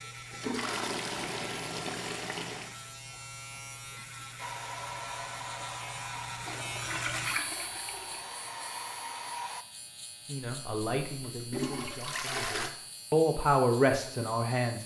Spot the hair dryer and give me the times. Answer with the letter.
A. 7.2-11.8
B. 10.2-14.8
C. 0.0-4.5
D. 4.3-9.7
D.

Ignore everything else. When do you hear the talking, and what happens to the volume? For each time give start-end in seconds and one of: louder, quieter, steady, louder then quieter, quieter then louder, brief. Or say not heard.
10.2-14.8 quieter then louder.